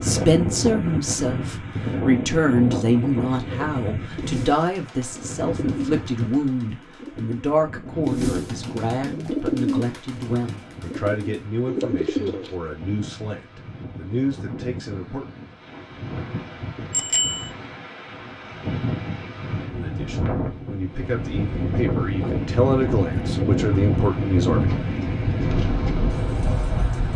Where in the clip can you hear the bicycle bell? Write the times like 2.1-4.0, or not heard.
16.9-17.5.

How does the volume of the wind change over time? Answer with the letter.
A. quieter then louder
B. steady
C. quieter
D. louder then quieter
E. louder
A.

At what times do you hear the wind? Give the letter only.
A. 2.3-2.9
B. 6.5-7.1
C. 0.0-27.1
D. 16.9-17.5
C.